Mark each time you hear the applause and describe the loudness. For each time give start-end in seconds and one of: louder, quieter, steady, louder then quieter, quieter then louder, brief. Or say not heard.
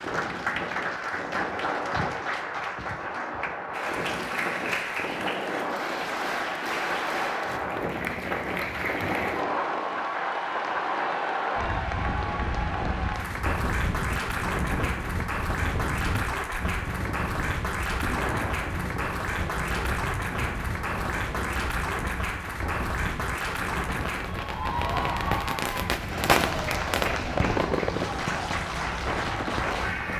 0.0-30.1 steady.